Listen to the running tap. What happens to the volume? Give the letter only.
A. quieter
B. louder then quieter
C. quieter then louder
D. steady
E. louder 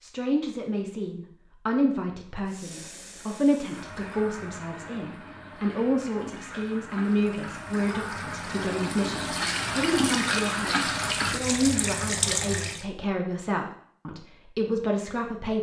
E.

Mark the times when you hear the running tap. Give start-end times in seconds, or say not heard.
2.5-12.8.